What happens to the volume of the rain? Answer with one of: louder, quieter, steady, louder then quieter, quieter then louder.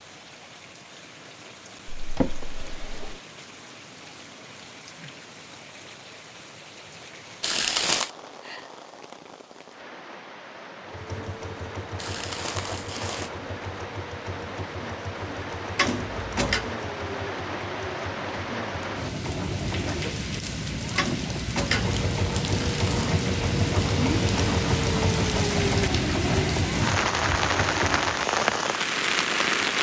louder.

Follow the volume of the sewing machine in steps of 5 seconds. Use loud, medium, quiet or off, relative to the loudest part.
off, off, medium, medium, loud, loud.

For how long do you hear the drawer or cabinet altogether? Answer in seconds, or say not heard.
3 s.